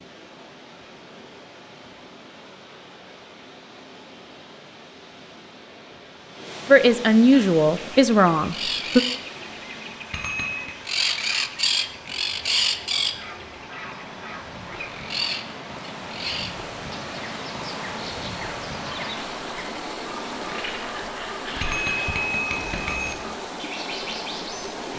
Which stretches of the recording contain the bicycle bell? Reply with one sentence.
You can hear the bicycle bell from 10.1 to 10.8 s and from 21.6 to 23.2 s.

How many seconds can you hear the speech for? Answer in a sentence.
The speech can be heard for 2 seconds in total.